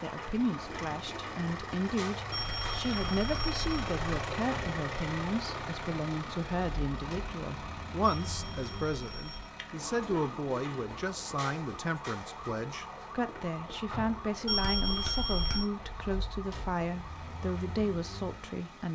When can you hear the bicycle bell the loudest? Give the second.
15 s.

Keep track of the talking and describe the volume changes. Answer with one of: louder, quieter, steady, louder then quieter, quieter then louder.
steady.